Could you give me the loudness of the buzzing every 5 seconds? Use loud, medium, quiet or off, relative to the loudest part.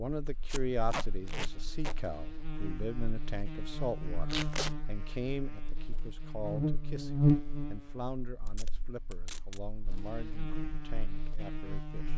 medium, loud, medium.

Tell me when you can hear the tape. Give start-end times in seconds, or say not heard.
0.5-1.9, 4.2-4.8, 8.4-9.6.